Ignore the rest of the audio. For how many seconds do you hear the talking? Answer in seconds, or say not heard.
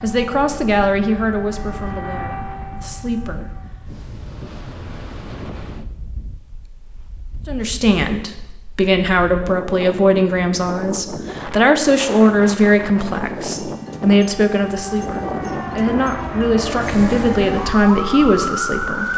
15 s.